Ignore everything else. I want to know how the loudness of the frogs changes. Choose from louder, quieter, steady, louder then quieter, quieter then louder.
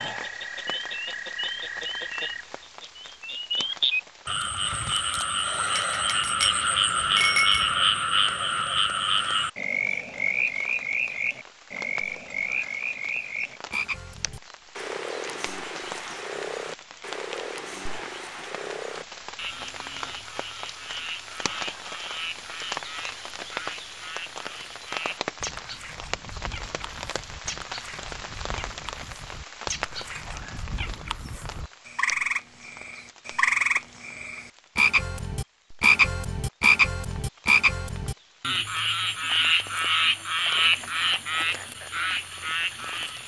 quieter then louder.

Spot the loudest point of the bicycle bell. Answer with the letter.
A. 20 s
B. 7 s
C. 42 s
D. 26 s
B.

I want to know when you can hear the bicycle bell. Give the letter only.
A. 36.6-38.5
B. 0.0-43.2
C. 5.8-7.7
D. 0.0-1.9
C.